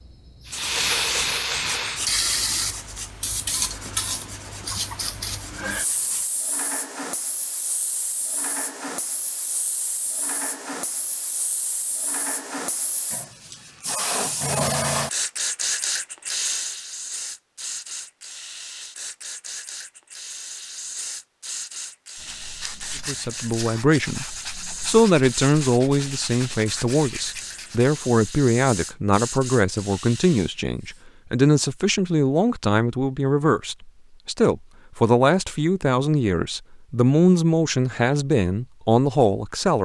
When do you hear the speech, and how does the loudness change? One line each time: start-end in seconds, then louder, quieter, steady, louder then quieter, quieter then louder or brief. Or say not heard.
23.1-39.8 steady.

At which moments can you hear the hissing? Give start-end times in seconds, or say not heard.
0.0-31.0.